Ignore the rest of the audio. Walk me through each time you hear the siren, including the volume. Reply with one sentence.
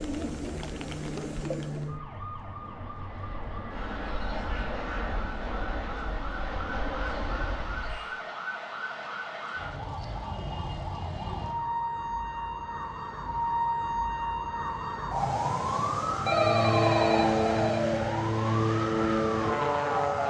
The siren can be heard from 0.0 to 20.2 s, getting louder.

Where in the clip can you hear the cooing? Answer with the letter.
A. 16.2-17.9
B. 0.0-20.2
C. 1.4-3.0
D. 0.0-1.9
D.